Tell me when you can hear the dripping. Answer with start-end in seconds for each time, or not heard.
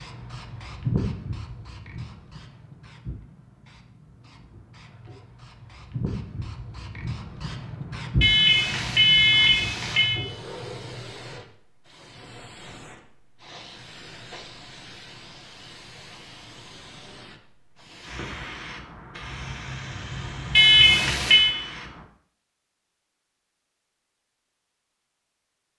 not heard.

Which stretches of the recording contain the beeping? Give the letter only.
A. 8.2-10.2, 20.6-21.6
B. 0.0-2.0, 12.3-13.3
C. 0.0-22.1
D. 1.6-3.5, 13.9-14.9
A.